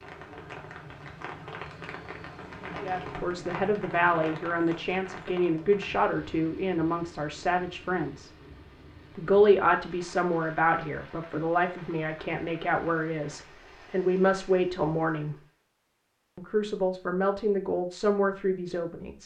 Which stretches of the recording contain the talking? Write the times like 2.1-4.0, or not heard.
2.8-8.3, 9.2-15.3, 16.4-19.2.